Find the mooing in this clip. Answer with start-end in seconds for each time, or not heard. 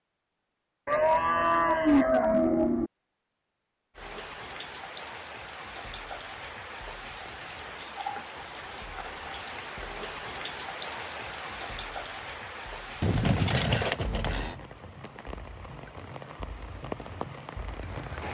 0.8-2.9, 13.0-14.6.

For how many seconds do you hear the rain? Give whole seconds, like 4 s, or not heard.
14 s.